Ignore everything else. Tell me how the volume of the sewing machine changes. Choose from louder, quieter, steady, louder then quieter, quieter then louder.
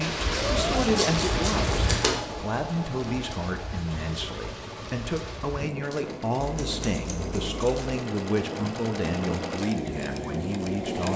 quieter then louder.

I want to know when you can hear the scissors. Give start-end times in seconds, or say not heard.
0.3-2.2, 6.3-7.8.